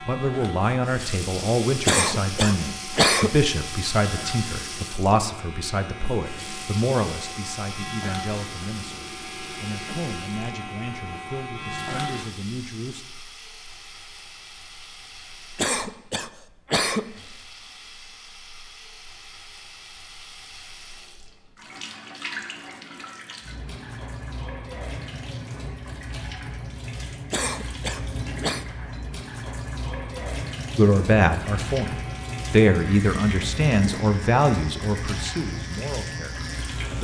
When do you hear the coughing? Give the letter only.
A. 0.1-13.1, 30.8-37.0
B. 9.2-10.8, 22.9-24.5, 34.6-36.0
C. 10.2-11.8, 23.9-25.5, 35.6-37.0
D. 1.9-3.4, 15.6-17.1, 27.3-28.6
D.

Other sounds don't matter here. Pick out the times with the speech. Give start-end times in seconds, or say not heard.
0.1-13.1, 30.8-37.0.